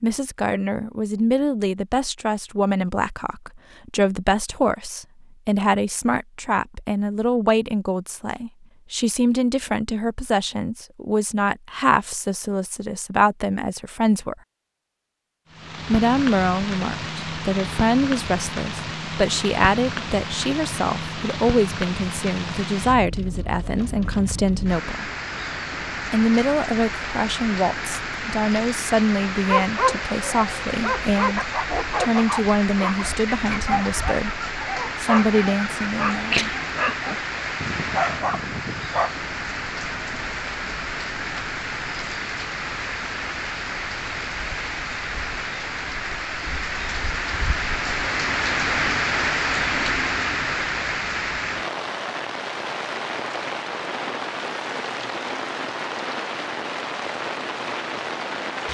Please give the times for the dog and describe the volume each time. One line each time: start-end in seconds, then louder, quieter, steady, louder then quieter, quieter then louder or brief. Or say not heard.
29.4-39.1 steady.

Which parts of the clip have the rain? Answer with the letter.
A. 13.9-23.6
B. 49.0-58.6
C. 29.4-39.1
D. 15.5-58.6
D.